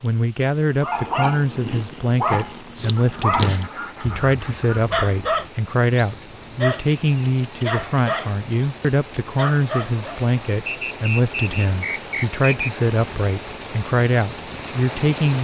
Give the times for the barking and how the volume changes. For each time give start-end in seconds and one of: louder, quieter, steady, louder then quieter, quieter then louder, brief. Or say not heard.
0.8-10.1 steady.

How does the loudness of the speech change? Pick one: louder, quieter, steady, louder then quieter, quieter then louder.
steady.